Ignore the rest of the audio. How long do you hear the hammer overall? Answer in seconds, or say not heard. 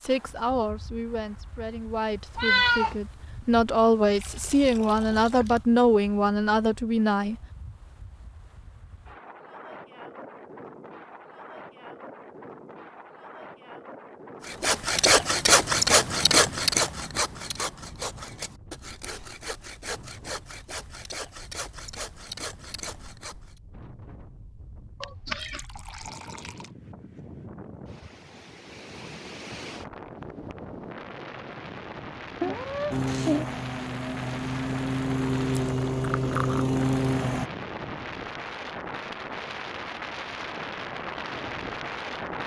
not heard.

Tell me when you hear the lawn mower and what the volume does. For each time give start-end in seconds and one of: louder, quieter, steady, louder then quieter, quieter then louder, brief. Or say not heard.
32.9-37.5 louder.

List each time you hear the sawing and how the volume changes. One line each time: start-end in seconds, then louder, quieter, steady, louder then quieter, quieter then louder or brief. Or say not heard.
14.4-23.6 quieter.